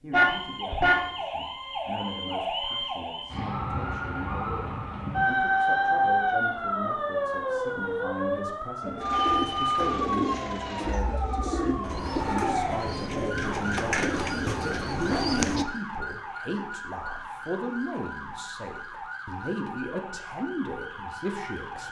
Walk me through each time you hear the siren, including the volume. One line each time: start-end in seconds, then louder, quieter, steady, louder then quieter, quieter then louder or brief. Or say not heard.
0.1-21.8 louder then quieter.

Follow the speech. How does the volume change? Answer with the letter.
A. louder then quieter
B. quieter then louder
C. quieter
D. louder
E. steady
D.